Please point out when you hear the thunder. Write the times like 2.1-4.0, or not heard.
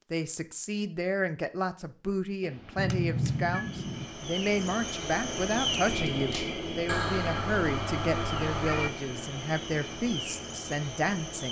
2.4-4.1.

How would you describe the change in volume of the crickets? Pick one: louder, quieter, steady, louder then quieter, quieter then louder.
louder then quieter.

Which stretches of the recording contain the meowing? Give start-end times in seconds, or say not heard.
2.8-3.6, 6.8-8.9.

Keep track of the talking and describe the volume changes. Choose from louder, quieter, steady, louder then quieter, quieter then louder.
steady.